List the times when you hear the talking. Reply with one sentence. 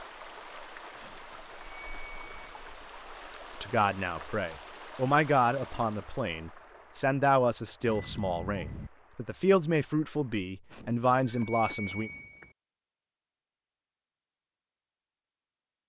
The talking can be heard from 3.6 to 12.1 s.